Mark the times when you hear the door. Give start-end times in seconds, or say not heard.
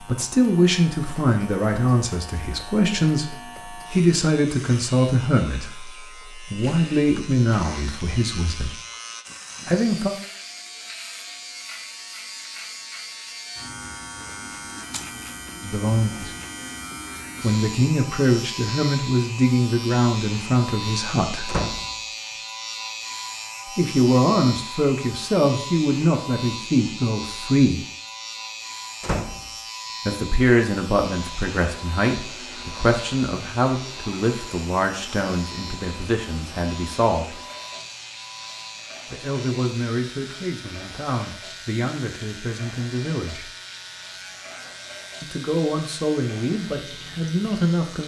21.4-21.9, 29.0-29.5.